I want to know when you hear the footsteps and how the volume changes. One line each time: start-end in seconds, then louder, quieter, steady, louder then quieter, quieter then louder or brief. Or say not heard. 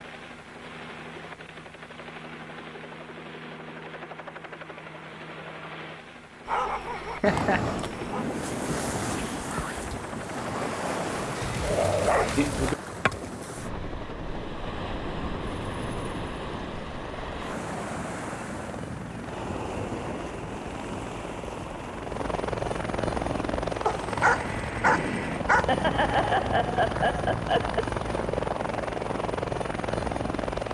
not heard.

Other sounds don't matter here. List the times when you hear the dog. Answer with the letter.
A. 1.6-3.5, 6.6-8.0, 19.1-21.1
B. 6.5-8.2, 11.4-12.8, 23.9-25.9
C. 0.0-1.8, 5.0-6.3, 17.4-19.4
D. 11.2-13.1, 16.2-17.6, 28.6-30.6
B.